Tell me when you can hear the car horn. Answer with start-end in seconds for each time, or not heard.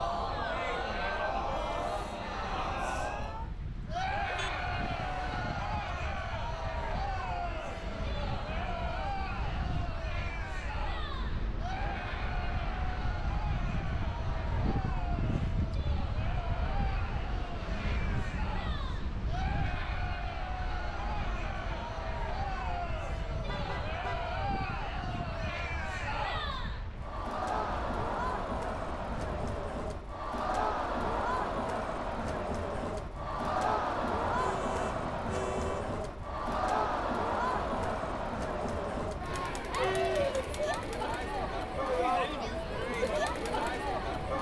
4.2-5.5, 23.3-24.4, 34.4-35.9.